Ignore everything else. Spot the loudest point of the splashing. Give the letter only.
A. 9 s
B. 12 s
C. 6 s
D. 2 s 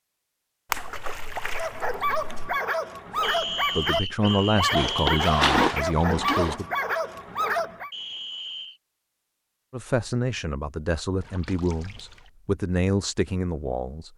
C.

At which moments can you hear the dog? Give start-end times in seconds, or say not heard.
1.5-7.9.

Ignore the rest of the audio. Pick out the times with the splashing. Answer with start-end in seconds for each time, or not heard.
0.7-2.3, 4.7-6.5, 11.2-12.3.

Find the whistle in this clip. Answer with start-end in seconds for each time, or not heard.
3.2-5.4, 7.9-8.8.